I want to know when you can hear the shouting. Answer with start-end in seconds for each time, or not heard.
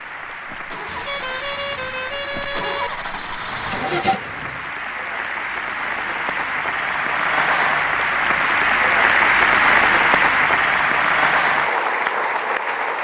not heard.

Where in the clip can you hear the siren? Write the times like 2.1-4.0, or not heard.
not heard.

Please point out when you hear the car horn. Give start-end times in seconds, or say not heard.
0.8-2.9.